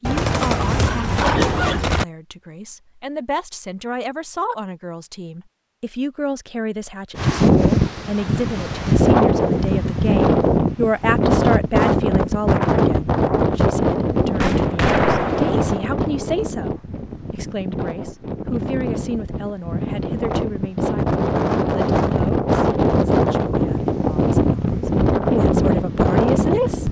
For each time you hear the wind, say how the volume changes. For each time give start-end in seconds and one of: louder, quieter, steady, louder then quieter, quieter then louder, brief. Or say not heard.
7.2-26.8 quieter then louder.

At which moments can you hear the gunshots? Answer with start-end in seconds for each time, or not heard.
0.0-2.0, 14.4-15.8.